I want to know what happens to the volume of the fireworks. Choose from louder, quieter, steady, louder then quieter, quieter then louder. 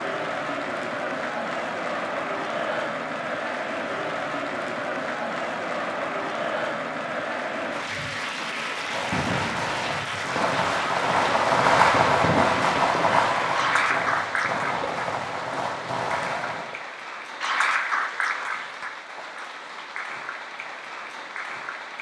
louder then quieter.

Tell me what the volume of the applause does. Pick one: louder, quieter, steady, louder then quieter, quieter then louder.
steady.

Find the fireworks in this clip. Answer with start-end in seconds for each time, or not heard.
8.8-16.8.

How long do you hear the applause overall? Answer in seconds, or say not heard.
22 s.